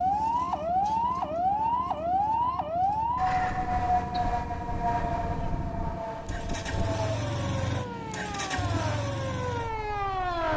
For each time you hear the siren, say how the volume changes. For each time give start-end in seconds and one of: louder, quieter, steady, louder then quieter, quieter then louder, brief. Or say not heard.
0.0-10.5 quieter.